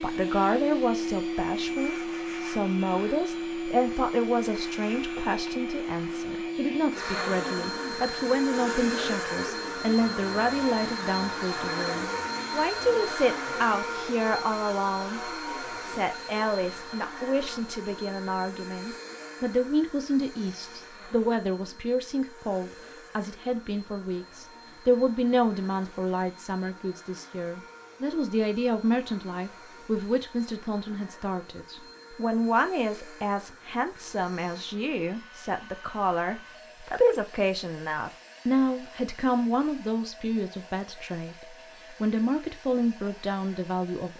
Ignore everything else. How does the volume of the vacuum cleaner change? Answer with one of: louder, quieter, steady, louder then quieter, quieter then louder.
quieter.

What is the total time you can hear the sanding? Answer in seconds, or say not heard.
not heard.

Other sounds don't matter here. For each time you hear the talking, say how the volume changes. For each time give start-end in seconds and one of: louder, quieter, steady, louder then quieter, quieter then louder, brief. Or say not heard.
0.0-15.2 steady
15.8-44.1 steady.